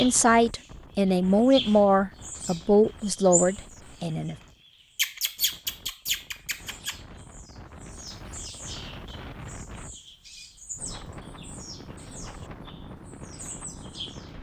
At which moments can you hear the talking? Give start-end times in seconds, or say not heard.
0.0-4.3.